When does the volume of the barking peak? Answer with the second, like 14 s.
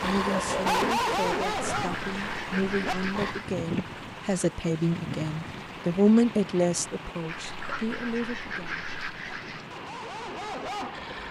1 s.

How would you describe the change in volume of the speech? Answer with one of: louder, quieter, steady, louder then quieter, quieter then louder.
louder then quieter.